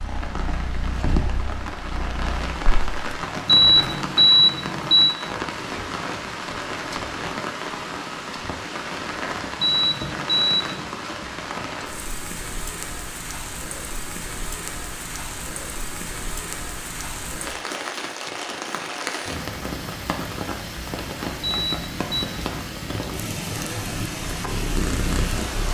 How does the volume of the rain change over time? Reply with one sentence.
The loudness of the rain stays about the same.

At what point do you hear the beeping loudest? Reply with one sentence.
The volume of the beeping peaks at 4 seconds.